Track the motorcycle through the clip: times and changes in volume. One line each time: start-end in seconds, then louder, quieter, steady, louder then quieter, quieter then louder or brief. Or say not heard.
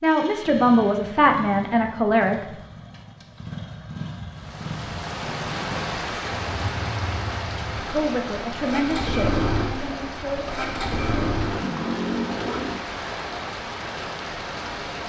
0.0-12.9 louder.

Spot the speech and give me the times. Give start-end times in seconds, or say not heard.
0.0-2.5, 7.9-10.8.